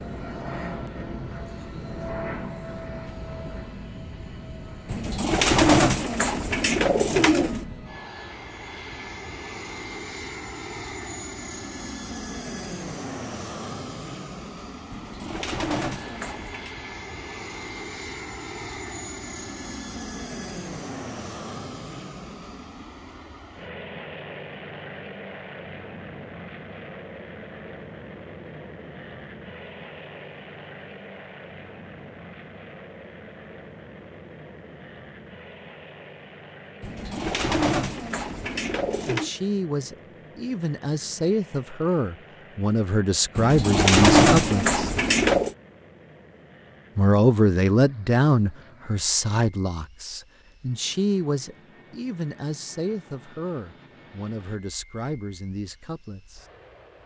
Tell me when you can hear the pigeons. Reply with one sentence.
The pigeons can be heard from 4.8 to 7.7 s, from 14.9 to 16.7 s, from 36.8 to 39.3 s and from 43.4 to 45.5 s.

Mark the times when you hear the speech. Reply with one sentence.
You can hear the speech from 39.0 to 44.9 s and from 47.0 to 56.5 s.